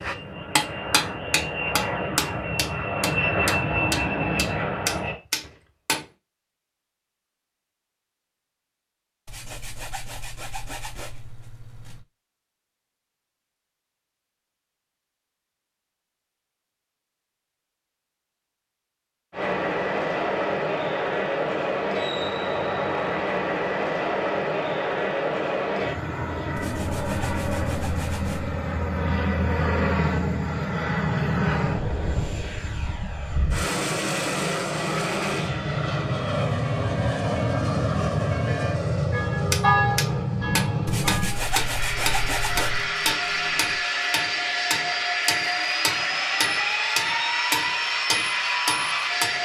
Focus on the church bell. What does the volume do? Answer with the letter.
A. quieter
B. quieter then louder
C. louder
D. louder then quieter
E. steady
D.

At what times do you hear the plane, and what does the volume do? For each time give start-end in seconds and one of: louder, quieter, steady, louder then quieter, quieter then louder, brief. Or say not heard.
0.0-5.2 louder
19.3-49.4 steady.